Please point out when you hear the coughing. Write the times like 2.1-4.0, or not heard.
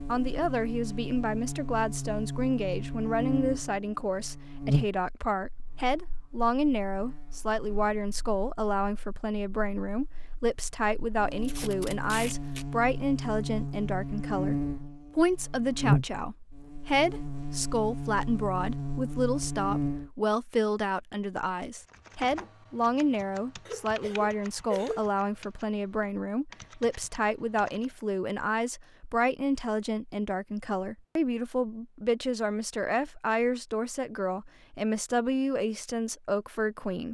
23.6-25.1.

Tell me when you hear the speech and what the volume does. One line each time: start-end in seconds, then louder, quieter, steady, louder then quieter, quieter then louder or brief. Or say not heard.
0.0-37.0 steady.